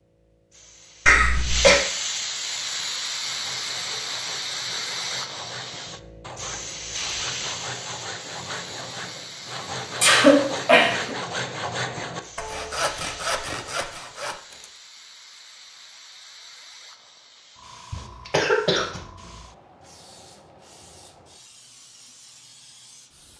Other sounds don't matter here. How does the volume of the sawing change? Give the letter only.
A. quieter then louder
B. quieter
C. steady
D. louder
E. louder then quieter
D.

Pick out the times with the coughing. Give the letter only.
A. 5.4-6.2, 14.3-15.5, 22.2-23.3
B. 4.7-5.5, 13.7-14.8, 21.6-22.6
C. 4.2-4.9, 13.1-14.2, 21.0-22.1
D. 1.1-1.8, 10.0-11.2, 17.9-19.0
D.